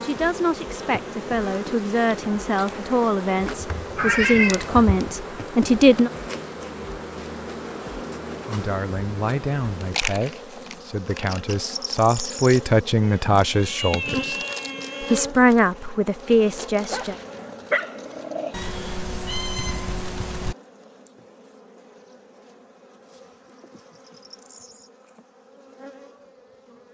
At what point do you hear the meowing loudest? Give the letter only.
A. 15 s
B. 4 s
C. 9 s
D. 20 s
B.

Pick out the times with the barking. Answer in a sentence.
The barking can be heard from 16.9 to 18.6 s.